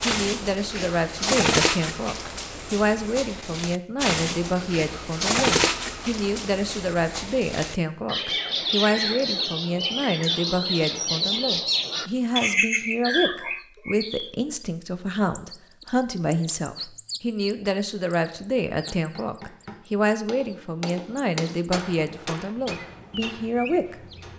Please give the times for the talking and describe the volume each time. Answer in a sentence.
You can hear the talking from 0.0 to 24.3 s, at a steady volume.